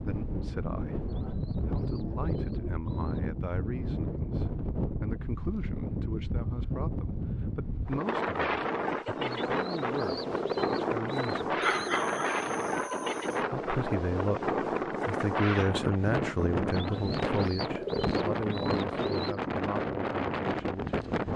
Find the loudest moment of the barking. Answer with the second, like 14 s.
12 s.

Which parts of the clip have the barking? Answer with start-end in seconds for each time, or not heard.
11.6-13.4.